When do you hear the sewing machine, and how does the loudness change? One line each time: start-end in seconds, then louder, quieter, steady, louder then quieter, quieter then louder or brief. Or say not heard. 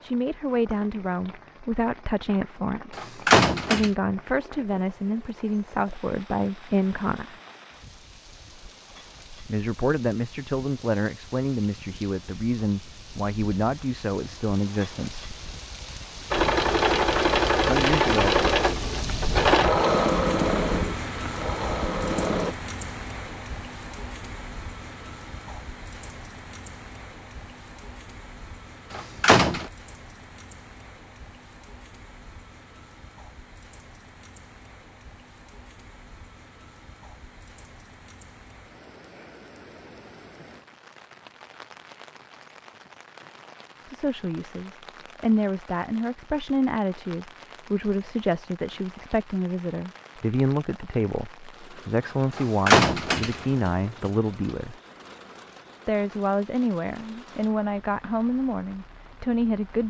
16.3-22.6 quieter.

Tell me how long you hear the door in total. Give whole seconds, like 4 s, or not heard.
3 s.